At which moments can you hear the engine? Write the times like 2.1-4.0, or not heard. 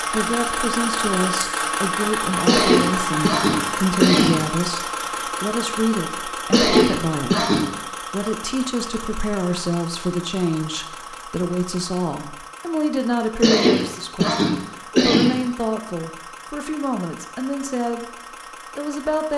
0.0-19.3.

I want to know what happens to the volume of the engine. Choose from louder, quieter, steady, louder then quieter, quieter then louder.
quieter.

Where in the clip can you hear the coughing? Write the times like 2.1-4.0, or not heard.
2.5-4.4, 6.5-7.7, 13.4-15.3.